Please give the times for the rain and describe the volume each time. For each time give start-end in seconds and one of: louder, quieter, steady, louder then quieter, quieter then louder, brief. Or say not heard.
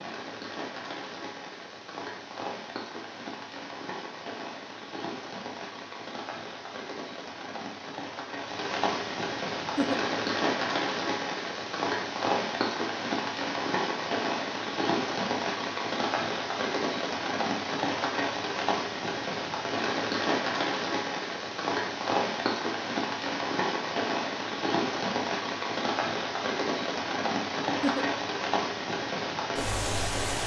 0.0-30.4 louder.